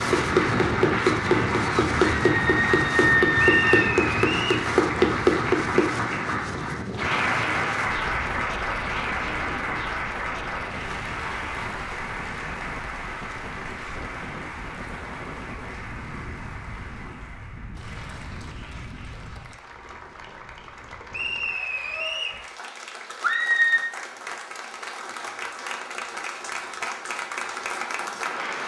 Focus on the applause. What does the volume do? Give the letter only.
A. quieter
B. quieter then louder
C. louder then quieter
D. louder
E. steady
B.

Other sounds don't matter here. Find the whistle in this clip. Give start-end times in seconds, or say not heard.
3.4-4.7, 21.1-22.4.